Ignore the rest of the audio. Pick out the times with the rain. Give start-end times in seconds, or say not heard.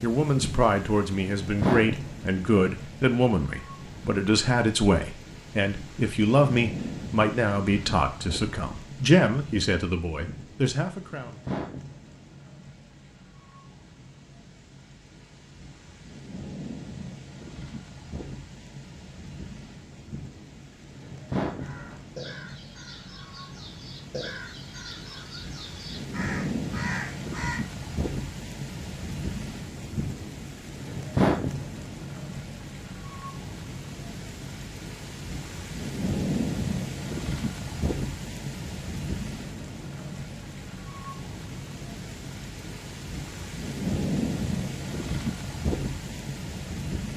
0.0-47.1.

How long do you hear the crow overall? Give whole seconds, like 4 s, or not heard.
6 s.